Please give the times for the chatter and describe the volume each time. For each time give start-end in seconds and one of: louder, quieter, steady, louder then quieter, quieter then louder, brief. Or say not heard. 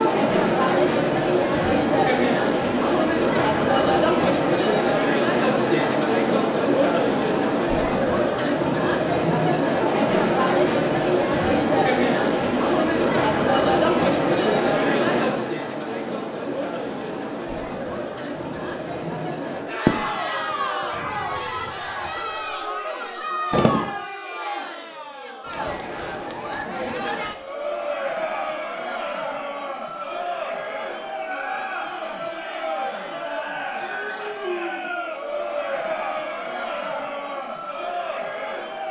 0.0-38.8 quieter.